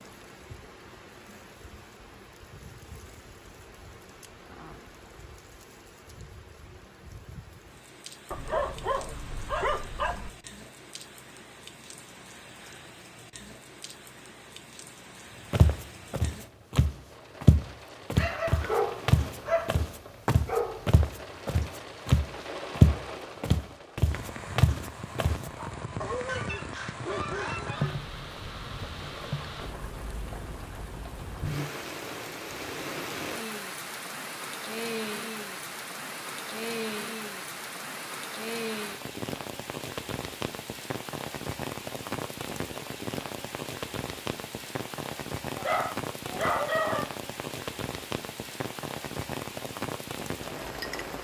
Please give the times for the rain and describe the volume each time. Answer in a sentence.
You can hear the rain from 0.0 to 51.1 s, getting louder.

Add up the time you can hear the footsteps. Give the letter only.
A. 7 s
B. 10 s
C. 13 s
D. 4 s
B.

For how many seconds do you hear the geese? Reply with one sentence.
The geese can be heard for 2 seconds in total.